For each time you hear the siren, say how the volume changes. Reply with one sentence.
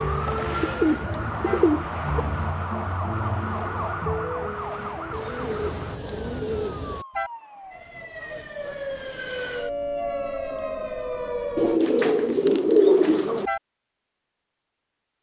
You can hear the siren from 0.0 to 11.8 s, getting quieter then louder.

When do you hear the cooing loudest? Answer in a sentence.
The loudest moment of the cooing is at 13 seconds.